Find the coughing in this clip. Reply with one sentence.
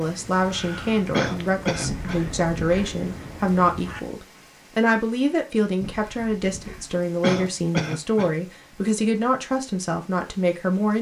The coughing can be heard from 1.1 to 2.2 s and from 7.0 to 8.3 s.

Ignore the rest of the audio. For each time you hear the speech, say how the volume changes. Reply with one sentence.
The speech can be heard from 0.0 to 10.9 s, at a steady volume.